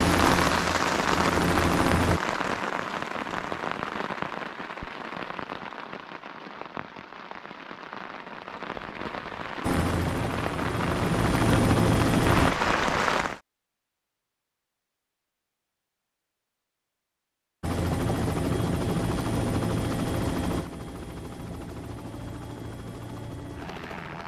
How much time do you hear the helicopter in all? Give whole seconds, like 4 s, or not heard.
12 s.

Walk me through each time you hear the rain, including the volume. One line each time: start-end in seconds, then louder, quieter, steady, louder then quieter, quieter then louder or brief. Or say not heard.
0.0-13.4 quieter then louder.